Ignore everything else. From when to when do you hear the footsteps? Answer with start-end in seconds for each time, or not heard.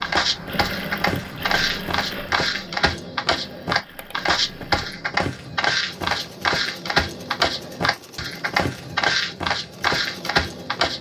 0.0-10.9.